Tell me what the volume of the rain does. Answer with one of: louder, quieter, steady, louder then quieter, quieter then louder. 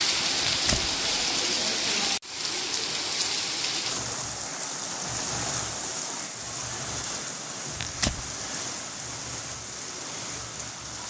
quieter.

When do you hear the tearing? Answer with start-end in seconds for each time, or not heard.
0.4-0.9, 7.8-8.2.